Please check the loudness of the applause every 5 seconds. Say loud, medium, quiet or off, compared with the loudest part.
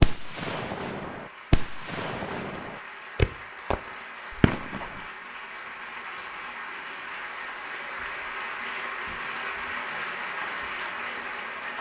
medium, loud, loud.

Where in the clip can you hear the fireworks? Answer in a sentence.
You can hear the fireworks from 0.0 to 5.0 s.